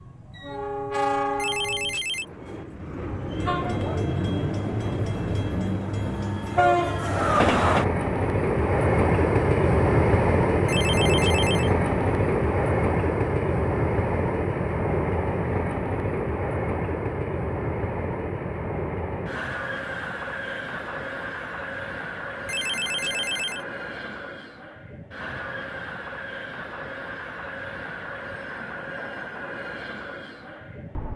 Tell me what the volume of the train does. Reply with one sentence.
The volume of the train goes up, then down.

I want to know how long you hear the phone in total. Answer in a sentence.
The phone can be heard for 3 seconds in total.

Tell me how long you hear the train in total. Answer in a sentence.
You can hear the train for 31 seconds altogether.